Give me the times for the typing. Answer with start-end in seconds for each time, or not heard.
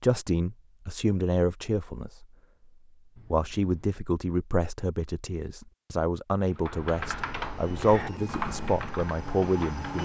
6.5-10.0.